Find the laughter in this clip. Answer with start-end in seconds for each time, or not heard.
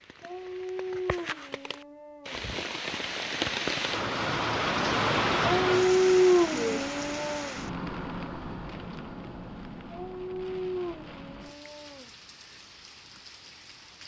not heard.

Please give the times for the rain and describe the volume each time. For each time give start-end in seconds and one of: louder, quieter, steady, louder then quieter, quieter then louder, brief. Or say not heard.
0.0-14.0 louder then quieter.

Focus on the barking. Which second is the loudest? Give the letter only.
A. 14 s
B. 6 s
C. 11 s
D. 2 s
B.